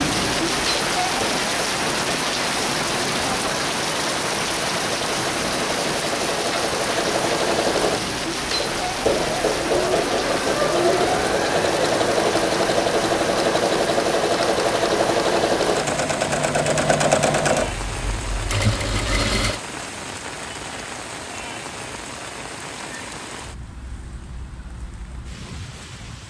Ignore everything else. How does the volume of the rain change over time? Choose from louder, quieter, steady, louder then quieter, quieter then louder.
quieter.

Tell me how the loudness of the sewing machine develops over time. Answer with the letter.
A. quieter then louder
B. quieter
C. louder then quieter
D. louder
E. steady
D.